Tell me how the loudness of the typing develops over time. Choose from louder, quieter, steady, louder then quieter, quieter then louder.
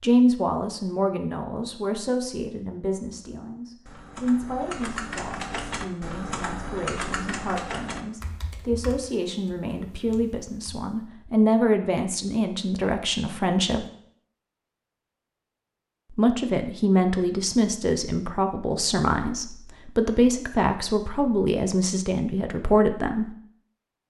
quieter.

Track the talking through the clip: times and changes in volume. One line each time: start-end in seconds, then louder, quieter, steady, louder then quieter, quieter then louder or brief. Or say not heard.
0.0-13.8 quieter then louder
16.1-23.4 steady.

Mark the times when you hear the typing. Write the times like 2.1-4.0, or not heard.
3.9-10.9.